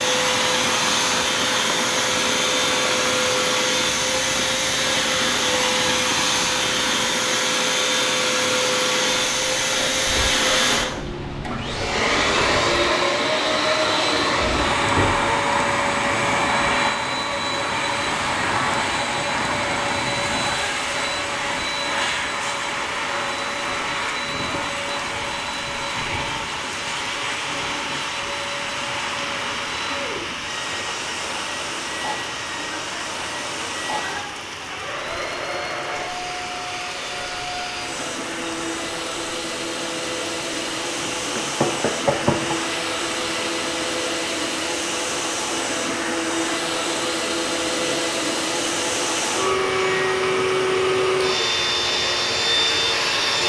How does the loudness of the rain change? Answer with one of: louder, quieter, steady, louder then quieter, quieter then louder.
steady.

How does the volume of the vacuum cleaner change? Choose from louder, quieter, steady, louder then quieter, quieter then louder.
quieter then louder.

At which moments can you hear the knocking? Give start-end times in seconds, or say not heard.
14.4-15.2, 41.4-42.5.